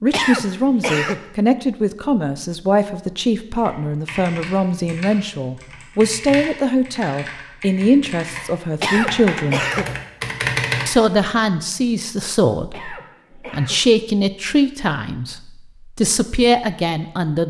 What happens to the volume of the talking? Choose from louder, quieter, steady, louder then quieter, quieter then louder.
steady.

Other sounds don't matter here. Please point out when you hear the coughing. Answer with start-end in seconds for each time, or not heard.
0.1-1.2, 8.8-9.9, 12.7-13.8.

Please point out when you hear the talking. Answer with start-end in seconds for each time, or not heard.
0.0-9.7, 10.8-17.4.